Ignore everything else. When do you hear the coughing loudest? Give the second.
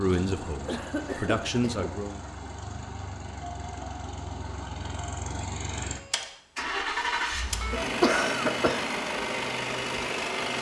8 s.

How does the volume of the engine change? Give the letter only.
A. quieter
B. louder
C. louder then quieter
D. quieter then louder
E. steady
B.